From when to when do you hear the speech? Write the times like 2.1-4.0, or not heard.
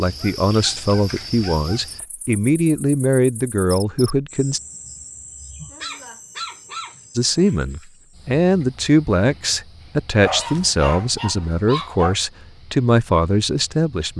0.0-4.6, 7.2-14.1.